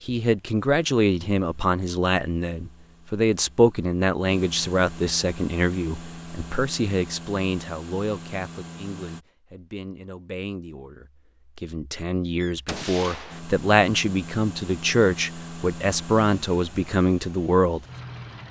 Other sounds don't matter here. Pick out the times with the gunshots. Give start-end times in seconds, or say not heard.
12.4-13.4.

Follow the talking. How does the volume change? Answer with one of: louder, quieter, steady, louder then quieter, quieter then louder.
quieter then louder.